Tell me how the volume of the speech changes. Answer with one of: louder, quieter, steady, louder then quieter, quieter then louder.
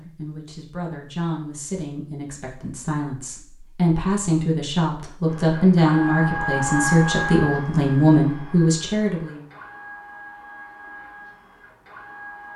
louder.